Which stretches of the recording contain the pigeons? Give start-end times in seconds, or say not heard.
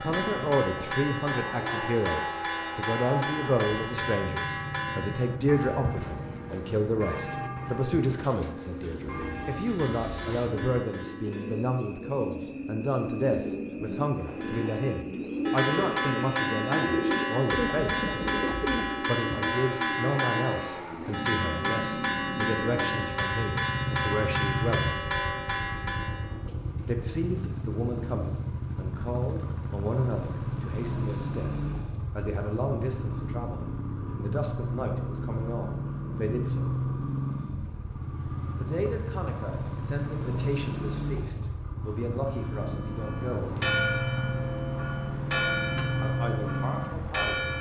8.1-19.0.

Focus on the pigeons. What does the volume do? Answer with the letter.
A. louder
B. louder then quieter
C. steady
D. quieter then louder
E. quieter
A.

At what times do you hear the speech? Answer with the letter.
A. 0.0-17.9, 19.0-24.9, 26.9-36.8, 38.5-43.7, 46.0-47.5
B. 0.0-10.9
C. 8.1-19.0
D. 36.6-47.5
A.